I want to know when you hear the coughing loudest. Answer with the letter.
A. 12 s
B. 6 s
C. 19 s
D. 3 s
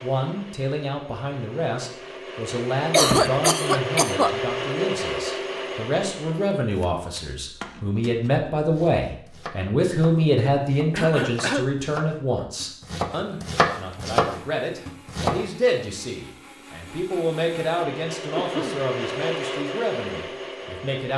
D.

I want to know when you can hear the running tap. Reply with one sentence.
The running tap can't be heard in this clip.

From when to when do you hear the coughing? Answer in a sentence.
The coughing can be heard from 2.9 to 4.3 s, from 10.9 to 11.7 s and from 18.4 to 18.9 s.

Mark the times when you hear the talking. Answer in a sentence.
The talking can be heard from 0.0 to 21.1 s.